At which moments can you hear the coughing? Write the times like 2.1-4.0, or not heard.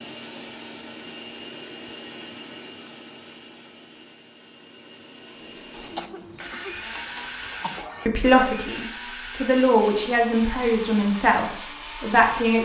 5.7-8.1.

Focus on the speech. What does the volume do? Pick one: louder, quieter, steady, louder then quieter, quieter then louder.
louder then quieter.